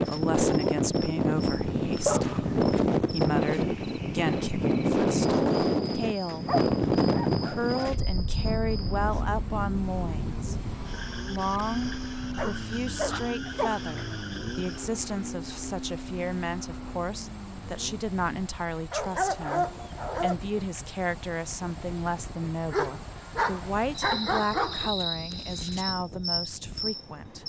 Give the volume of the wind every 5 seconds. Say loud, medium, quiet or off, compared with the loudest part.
loud, loud, quiet, quiet, quiet, quiet.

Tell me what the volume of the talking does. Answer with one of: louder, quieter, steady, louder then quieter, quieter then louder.
steady.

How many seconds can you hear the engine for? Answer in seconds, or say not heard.
9 s.